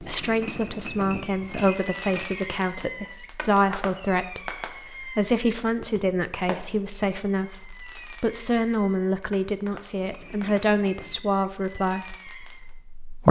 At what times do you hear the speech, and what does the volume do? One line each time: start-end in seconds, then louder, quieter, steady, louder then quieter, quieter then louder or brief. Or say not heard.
0.0-13.2 steady.